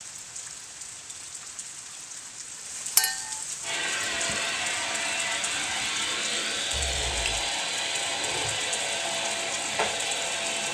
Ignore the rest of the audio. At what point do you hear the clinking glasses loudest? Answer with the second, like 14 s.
3 s.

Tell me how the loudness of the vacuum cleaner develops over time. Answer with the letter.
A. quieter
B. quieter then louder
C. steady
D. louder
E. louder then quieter
C.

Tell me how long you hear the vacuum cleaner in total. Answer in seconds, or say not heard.
7 s.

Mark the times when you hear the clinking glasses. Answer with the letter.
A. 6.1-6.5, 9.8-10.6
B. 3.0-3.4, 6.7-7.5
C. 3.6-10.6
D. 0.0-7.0
B.